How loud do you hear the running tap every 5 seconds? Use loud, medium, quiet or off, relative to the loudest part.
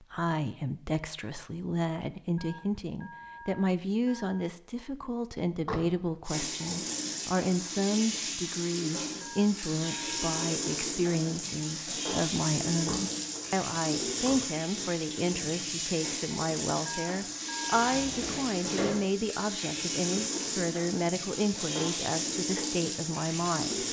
off, loud, loud, loud, loud.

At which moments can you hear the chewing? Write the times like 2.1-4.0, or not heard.
not heard.